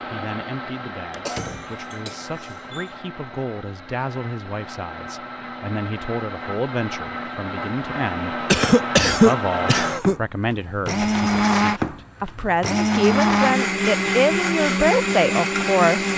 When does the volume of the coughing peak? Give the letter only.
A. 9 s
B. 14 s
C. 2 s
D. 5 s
A.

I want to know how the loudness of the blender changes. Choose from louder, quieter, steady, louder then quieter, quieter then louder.
louder.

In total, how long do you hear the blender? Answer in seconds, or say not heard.
16 s.